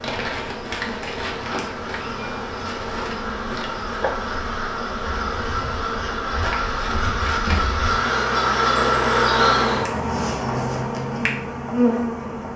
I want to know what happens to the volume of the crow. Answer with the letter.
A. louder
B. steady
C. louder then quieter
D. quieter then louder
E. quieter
A.